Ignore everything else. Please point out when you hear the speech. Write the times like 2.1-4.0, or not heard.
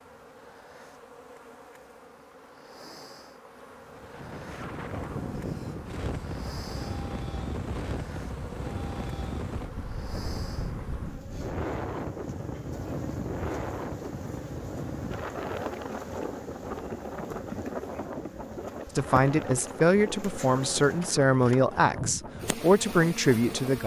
18.9-23.8.